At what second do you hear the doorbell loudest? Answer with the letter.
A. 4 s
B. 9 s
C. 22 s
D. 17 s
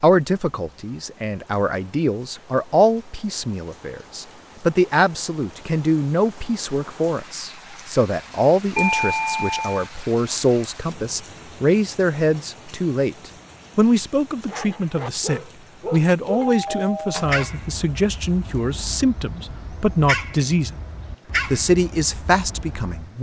B.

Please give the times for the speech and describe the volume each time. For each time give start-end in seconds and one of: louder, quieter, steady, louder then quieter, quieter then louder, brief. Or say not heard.
0.0-20.8 steady
21.5-23.1 brief.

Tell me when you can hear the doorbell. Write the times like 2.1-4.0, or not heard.
8.8-9.8, 16.4-17.4.